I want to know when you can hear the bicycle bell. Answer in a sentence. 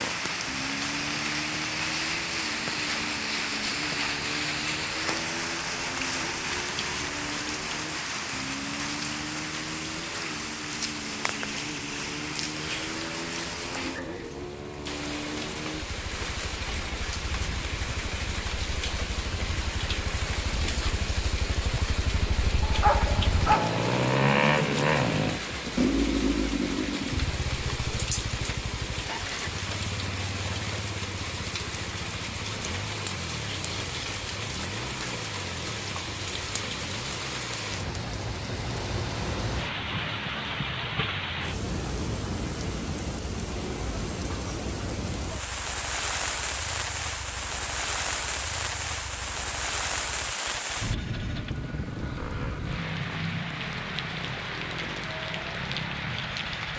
You can't hear the bicycle bell here.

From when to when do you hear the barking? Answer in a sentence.
The barking can be heard from 22.6 to 23.9 s.